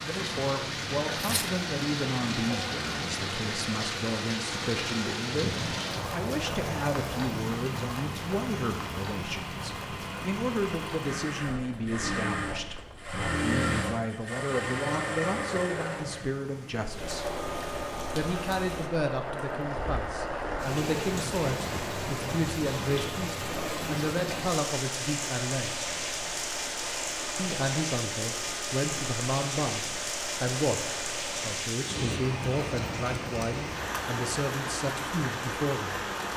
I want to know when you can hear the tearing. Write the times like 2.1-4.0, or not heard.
1.1-1.6.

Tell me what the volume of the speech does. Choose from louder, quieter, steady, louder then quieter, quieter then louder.
steady.